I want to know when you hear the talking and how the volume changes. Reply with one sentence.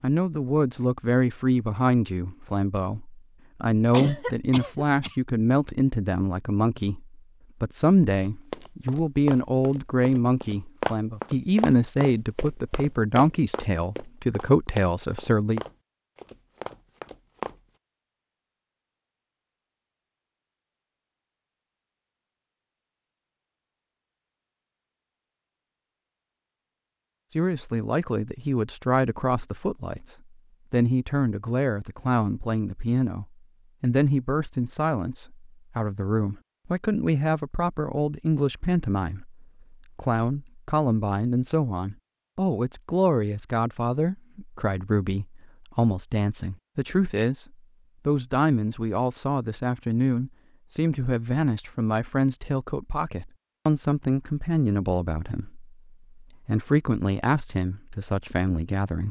The talking can be heard from 0.0 to 15.6 s, at a steady volume; and from 27.4 to 59.0 s, at a steady volume.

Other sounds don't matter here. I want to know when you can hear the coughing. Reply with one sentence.
You can hear the coughing from 3.9 to 5.2 s.